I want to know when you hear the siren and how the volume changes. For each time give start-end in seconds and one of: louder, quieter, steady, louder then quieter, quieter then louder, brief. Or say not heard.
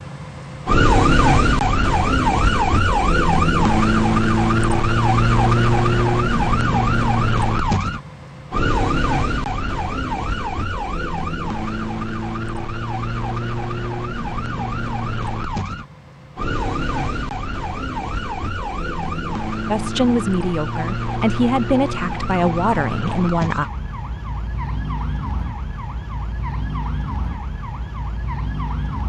0.0-29.0 quieter.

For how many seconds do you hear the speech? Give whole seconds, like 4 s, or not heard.
4 s.